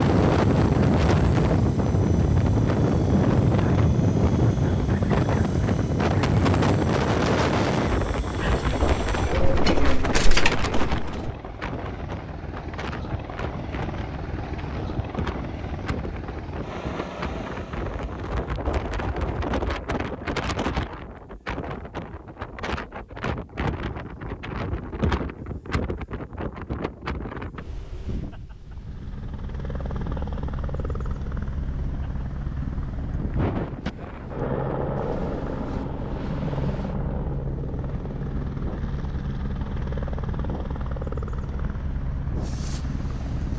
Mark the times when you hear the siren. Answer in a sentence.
You can't hear the siren here.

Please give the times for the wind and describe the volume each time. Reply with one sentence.
The wind can be heard from 0.0 to 43.5 s, getting quieter.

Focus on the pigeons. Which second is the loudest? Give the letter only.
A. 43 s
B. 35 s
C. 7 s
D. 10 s
D.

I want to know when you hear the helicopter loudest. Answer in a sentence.
The loudest moment of the helicopter is at 35 seconds.